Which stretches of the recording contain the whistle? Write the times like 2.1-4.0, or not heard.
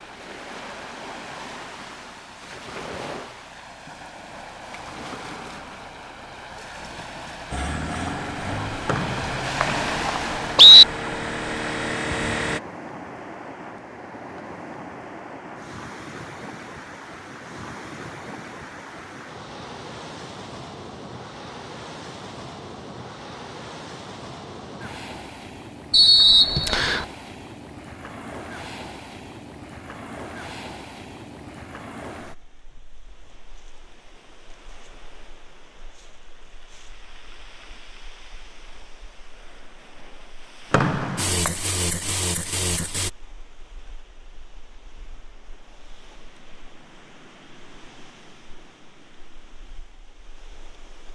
8.8-10.8, 25.9-27.1, 40.7-41.5.